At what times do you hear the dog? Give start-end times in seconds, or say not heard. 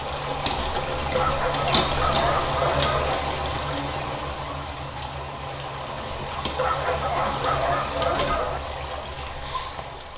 1.1-3.1, 6.5-8.6.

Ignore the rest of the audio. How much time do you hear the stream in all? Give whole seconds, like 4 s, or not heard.
10 s.